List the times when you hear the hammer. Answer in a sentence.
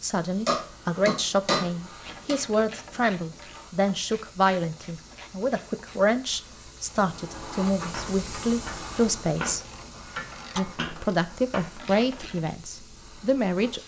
You can hear the hammer from 0.5 to 2.4 s.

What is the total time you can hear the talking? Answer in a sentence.
You can hear the talking for 13 seconds altogether.